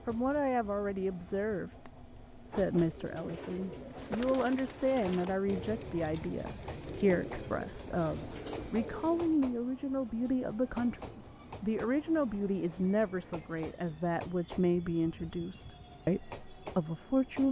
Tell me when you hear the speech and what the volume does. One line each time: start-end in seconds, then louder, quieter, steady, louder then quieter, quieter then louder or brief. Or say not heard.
0.1-17.4 steady.